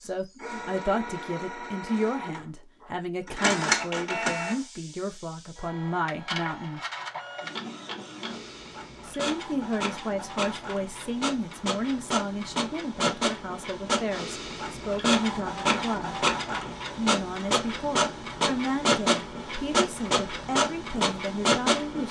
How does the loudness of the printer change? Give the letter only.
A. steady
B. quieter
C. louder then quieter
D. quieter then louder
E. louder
D.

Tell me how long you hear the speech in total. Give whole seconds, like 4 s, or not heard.
19 s.